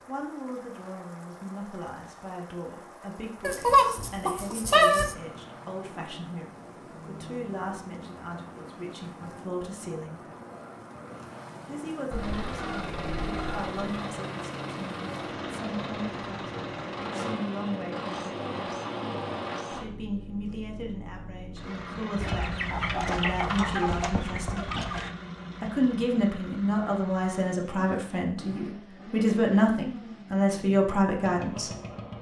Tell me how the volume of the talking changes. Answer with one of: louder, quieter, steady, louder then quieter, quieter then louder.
louder.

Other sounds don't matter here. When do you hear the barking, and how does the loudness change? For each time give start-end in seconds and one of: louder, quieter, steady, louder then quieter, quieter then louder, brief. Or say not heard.
not heard.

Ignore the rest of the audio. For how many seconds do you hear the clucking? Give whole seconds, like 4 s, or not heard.
6 s.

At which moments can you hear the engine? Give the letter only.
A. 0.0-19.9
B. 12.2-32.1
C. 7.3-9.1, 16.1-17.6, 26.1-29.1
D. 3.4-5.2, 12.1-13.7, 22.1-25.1
B.